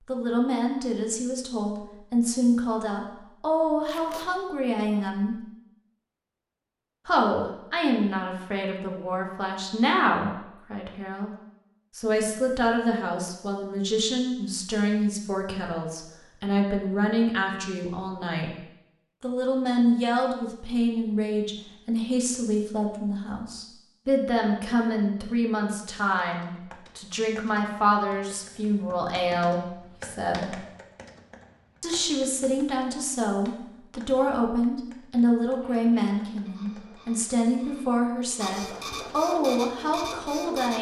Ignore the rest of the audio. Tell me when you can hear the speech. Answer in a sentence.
You can hear the speech from 0.1 to 5.4 s, from 7.0 to 11.3 s, from 11.9 to 18.6 s, from 19.2 to 30.6 s and from 31.8 to 40.7 s.